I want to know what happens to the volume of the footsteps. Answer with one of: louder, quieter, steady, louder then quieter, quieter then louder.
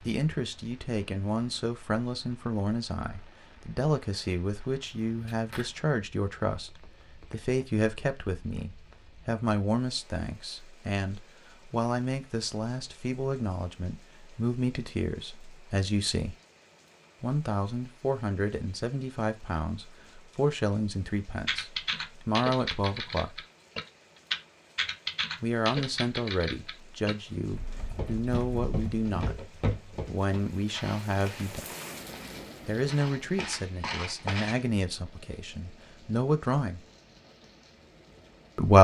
quieter then louder.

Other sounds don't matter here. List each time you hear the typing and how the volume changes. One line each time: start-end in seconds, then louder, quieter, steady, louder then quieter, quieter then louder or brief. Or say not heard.
21.4-29.1 quieter.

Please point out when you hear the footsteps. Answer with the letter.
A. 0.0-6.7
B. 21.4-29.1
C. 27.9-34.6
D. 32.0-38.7
C.